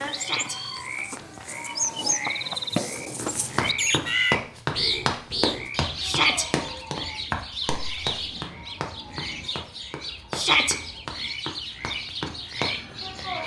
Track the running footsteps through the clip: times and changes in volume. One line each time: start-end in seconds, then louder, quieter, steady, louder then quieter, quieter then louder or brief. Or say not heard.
3.1-12.7 quieter.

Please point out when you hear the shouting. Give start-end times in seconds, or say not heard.
0.1-0.6, 6.0-6.5, 10.3-10.8.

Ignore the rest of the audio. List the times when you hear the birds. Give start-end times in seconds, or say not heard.
0.0-13.4.